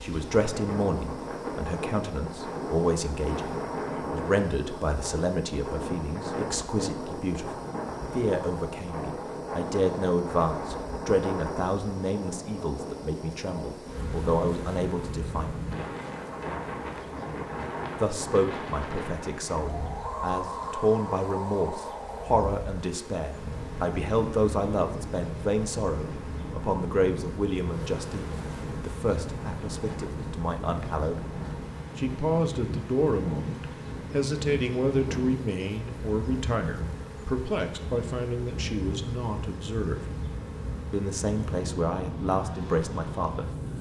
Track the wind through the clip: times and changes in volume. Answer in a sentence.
You can hear the wind from 0.0 to 43.7 s, at a steady volume.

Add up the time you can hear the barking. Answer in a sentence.
The barking can't be heard in this clip.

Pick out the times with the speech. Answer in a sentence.
You can hear the speech from 0.0 to 15.6 s, from 18.0 to 31.2 s, from 31.9 to 40.0 s and from 40.9 to 43.5 s.